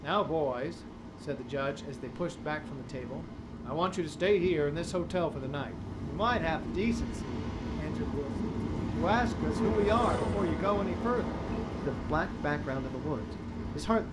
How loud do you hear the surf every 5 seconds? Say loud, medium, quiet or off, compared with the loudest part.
medium, loud, loud.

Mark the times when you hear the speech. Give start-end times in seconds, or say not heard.
0.0-14.0.